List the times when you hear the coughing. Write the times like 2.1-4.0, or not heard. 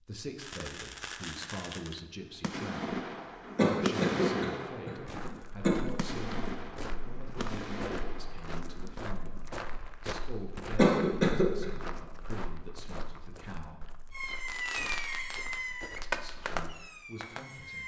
3.5-5.8, 10.8-11.7.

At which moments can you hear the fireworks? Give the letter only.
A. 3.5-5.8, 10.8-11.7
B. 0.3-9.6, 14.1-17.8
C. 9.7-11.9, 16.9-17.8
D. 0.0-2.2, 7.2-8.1
B.